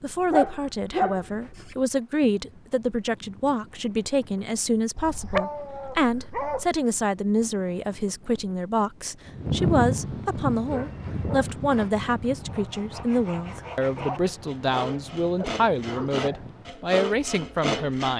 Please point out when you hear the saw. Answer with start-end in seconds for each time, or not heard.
10.5-18.1.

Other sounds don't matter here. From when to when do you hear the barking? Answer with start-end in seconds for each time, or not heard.
0.3-1.8, 5.0-6.7, 10.7-11.5, 13.9-16.4.